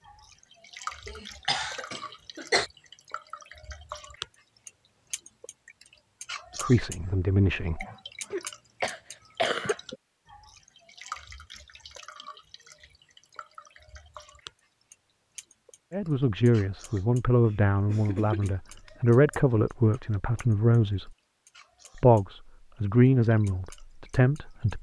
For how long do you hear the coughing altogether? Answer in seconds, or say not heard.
5 s.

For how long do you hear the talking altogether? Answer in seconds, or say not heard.
9 s.